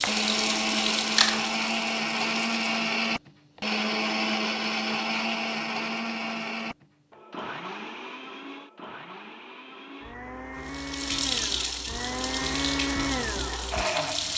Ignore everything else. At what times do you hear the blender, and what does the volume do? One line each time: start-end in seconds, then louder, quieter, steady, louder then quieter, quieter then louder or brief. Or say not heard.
0.1-14.3 quieter then louder.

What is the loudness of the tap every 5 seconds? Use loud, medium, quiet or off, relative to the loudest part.
loud, off, loud.